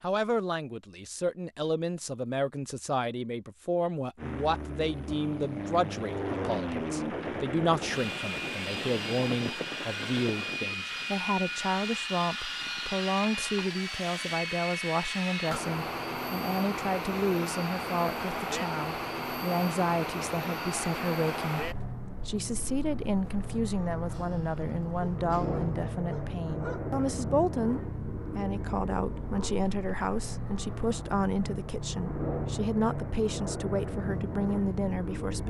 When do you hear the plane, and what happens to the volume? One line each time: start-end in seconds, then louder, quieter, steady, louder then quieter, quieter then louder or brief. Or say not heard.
4.2-35.4 steady.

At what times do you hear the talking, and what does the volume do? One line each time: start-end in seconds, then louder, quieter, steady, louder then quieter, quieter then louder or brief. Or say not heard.
0.0-35.4 steady.